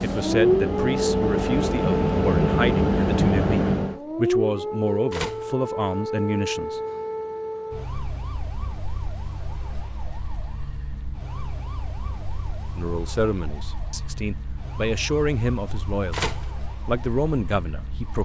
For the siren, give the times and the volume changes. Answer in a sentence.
The siren can be heard from 0.0 to 18.2 s, getting quieter.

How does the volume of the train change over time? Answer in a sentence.
The loudness of the train goes up.